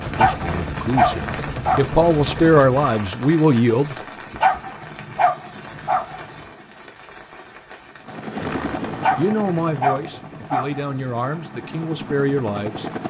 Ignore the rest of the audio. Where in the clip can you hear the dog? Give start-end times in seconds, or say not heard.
0.1-1.8, 4.4-6.5, 9.0-11.1.